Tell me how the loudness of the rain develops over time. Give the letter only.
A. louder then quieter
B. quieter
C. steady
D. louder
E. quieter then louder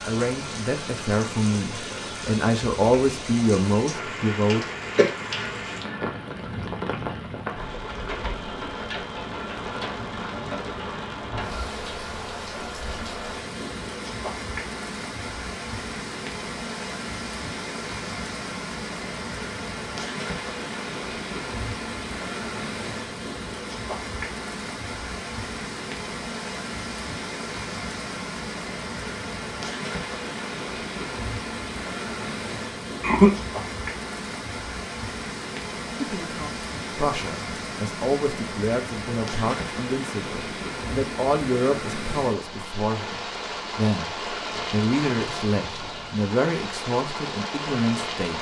C.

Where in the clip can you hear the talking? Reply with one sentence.
The talking can be heard from 0.0 to 4.7 s and from 36.0 to 48.3 s.